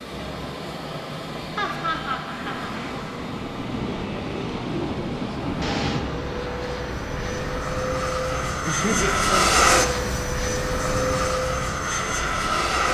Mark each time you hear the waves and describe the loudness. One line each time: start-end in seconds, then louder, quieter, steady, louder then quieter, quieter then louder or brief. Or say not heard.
0.0-8.6 louder then quieter.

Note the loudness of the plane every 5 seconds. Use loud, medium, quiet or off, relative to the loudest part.
medium, loud, loud.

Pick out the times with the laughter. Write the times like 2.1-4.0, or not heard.
1.6-2.8, 8.6-9.6.